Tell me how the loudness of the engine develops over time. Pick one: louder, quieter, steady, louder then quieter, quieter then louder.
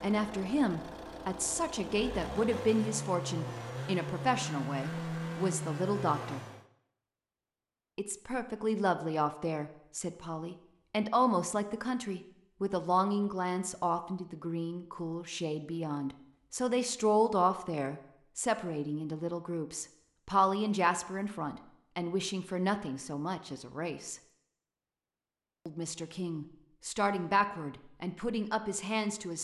louder.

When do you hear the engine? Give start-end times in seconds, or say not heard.
0.0-6.7.